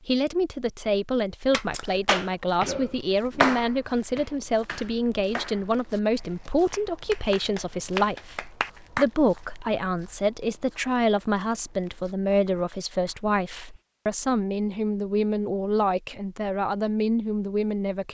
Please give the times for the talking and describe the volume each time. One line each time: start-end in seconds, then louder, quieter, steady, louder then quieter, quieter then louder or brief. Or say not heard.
0.1-18.0 steady.